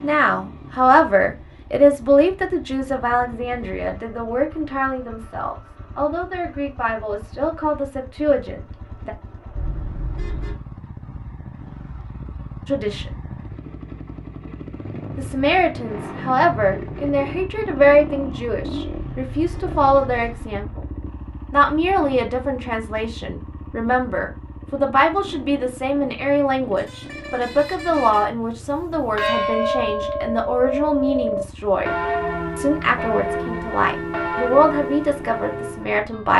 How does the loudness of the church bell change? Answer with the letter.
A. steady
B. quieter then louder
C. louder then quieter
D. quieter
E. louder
D.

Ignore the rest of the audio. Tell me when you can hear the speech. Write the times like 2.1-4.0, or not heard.
0.0-9.1, 12.7-13.2, 15.2-20.9, 21.5-31.9, 32.5-36.3.